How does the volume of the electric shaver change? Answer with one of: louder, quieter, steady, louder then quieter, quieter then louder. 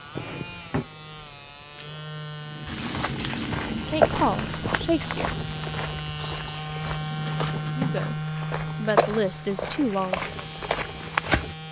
louder then quieter.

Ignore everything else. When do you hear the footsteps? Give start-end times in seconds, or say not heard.
2.6-11.6.